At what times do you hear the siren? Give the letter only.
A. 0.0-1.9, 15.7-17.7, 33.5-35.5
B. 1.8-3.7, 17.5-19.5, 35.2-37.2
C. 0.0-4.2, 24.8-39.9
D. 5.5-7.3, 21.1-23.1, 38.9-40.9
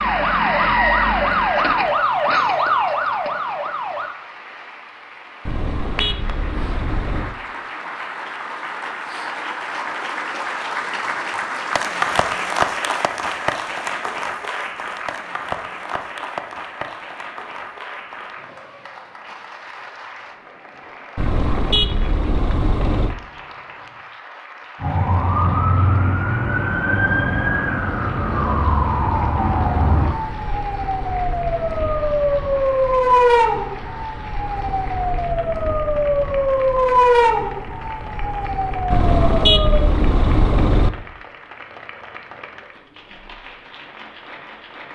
C.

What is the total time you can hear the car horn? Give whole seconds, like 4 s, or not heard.
6 s.